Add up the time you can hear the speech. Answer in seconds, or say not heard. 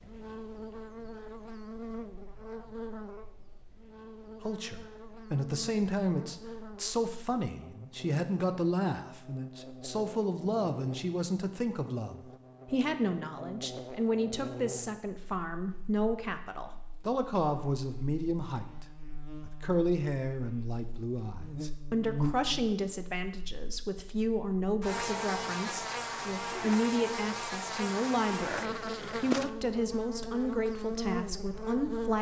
27 s.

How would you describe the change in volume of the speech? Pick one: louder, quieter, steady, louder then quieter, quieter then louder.
steady.